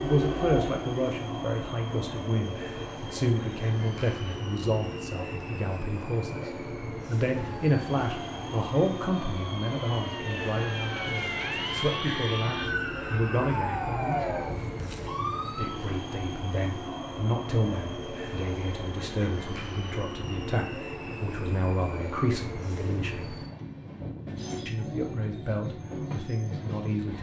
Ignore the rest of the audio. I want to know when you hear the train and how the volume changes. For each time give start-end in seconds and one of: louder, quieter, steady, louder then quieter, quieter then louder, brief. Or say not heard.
0.0-27.1 steady.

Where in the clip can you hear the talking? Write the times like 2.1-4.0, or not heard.
0.0-14.4, 15.5-23.4, 24.6-27.1.